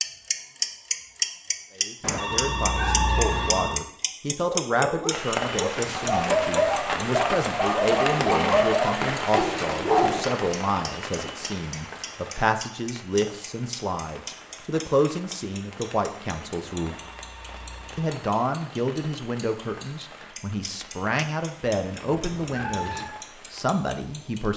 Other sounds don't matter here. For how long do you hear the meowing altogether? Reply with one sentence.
You can hear the meowing for 2 seconds altogether.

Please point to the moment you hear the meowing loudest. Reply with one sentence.
The volume of the meowing peaks at 3 seconds.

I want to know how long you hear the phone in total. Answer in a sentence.
You can hear the phone for 3 seconds altogether.